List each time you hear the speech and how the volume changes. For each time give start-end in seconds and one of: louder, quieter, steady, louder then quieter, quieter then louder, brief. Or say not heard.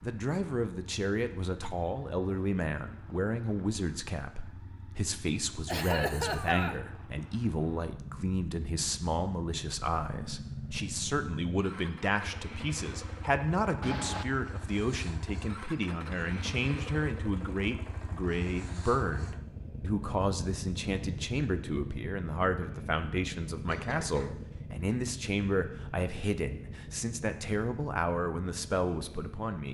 0.0-29.6 steady.